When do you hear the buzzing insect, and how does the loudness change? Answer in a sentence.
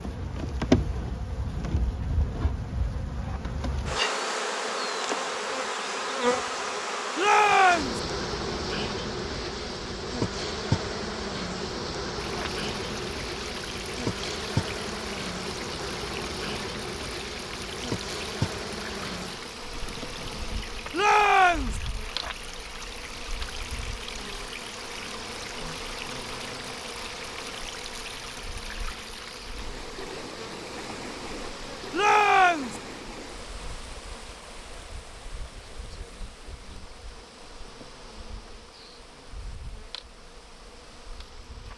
You can hear the buzzing insect from 0.0 to 41.7 s, getting quieter.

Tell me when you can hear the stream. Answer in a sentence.
The stream can be heard from 12.2 to 41.7 s.